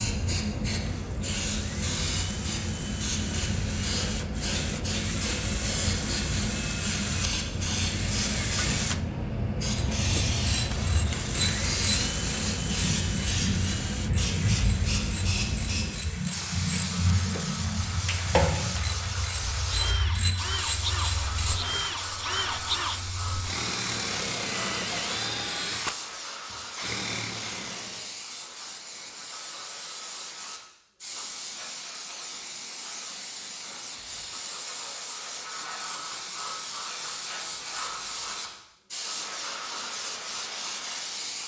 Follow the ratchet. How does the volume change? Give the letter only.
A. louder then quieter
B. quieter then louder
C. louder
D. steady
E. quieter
D.